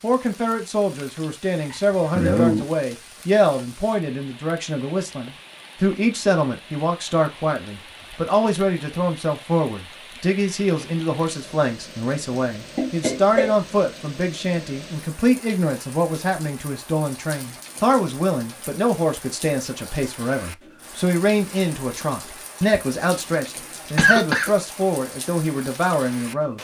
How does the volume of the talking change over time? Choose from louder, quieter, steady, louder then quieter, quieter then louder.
steady.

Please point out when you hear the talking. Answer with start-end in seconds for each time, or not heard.
0.0-26.5.